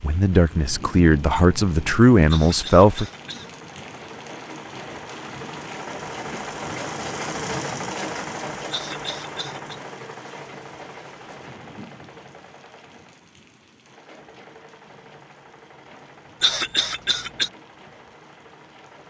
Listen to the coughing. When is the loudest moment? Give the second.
17 s.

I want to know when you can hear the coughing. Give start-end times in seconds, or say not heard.
2.2-3.5, 8.7-9.8, 16.4-17.5.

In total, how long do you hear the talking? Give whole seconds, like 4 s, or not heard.
3 s.